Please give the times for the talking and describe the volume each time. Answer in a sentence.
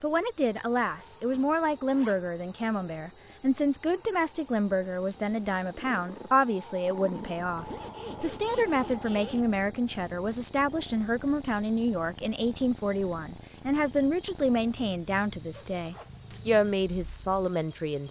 You can hear the talking from 0.0 to 18.0 s, at a steady volume.